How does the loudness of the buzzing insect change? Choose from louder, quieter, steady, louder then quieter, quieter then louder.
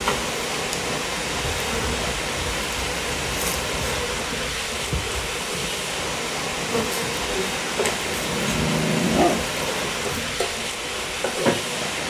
steady.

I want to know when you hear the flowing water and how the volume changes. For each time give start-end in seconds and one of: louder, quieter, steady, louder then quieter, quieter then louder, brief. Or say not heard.
0.0-12.0 steady.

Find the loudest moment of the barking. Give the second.
9 s.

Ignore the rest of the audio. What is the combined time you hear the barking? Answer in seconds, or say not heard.
2 s.